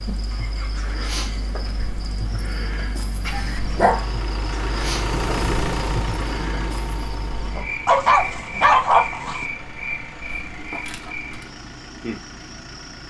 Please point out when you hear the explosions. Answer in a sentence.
The explosions can't be heard in this clip.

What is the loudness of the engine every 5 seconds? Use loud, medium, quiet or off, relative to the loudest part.
medium, loud, medium.